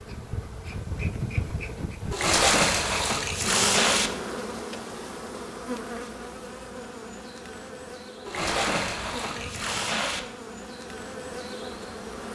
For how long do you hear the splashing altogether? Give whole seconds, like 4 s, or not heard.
4 s.